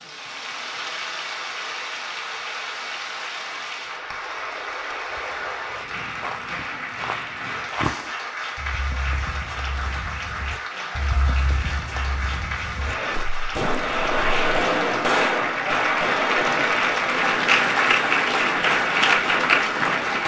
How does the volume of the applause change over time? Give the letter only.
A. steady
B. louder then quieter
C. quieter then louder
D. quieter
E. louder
E.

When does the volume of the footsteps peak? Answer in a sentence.
The loudest moment of the footsteps is at 8 seconds.